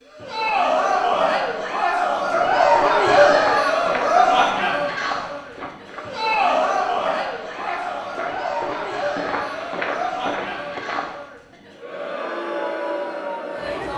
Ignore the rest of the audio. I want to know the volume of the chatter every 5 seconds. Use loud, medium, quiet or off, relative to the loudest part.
loud, medium, medium.